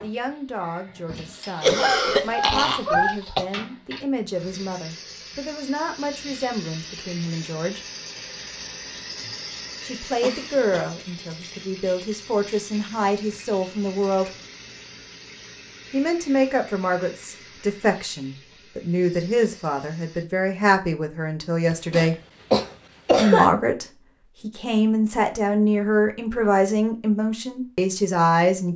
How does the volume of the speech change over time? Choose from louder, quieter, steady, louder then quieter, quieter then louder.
louder.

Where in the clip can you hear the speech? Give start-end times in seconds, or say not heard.
0.0-7.8, 9.8-14.3, 15.9-22.1, 23.1-28.7.